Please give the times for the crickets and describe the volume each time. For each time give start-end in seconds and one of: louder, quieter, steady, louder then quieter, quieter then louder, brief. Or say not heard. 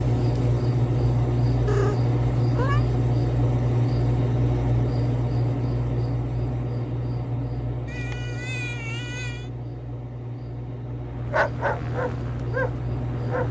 0.0-13.4 quieter.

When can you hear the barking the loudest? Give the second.
12 s.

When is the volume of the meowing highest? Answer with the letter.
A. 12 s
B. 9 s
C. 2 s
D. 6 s
C.